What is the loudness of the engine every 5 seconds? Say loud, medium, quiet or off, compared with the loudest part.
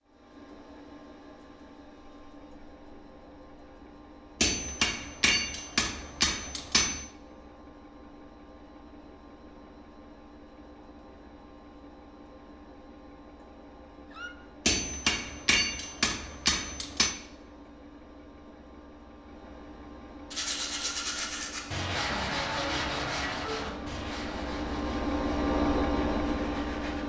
quiet, quiet, quiet, quiet, medium, loud.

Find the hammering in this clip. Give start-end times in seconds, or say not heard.
4.4-7.0, 14.7-17.2.